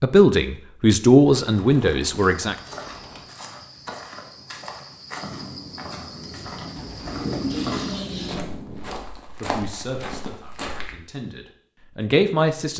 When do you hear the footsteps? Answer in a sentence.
The footsteps can be heard from 2.1 to 10.9 s.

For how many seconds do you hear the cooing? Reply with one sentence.
You can hear the cooing for 4 seconds altogether.